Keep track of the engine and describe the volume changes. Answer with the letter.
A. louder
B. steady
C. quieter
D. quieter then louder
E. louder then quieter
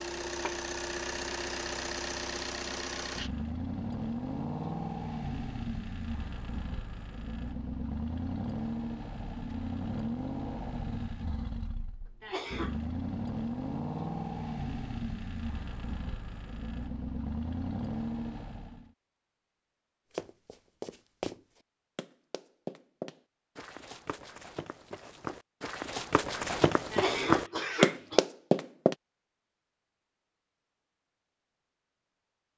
B.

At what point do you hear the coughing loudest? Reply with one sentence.
The loudest moment of the coughing is at 27 seconds.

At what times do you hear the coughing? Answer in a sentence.
The coughing can be heard from 12.2 to 12.8 s and from 26.9 to 28.2 s.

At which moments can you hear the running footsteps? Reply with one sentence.
The running footsteps can be heard from 20.1 to 28.9 s.